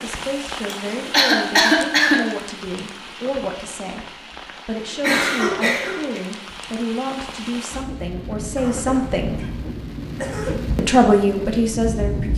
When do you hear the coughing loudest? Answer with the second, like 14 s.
2 s.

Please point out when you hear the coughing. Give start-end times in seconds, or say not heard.
0.7-2.2, 5.0-6.2, 8.6-10.6.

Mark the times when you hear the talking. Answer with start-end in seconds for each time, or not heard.
0.0-9.4, 10.8-12.3.